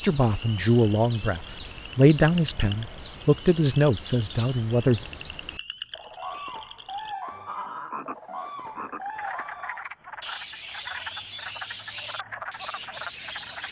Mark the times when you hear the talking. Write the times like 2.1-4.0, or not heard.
0.0-5.0.